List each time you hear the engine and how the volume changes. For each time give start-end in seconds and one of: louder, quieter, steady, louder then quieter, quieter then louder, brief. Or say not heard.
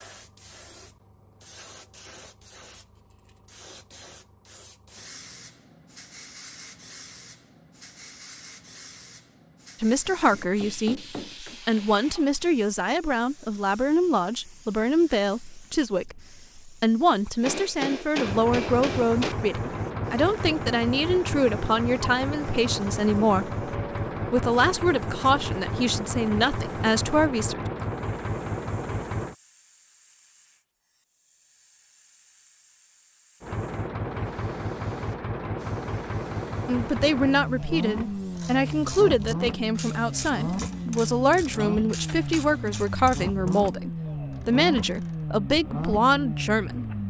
18.2-29.4 steady
33.4-47.0 steady.